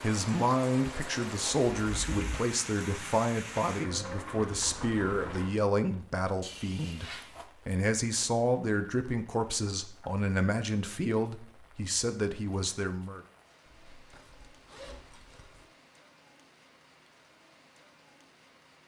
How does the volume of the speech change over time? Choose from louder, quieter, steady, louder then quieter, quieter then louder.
steady.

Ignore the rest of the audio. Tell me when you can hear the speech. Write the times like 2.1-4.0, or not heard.
0.0-13.2.